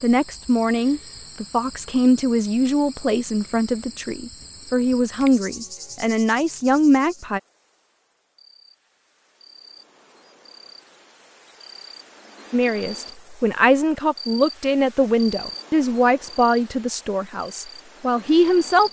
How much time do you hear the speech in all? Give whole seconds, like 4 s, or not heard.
14 s.